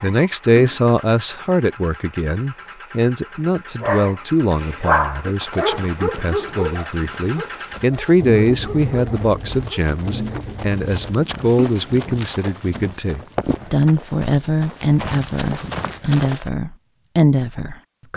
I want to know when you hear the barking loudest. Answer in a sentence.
The loudest moment of the barking is at 5 seconds.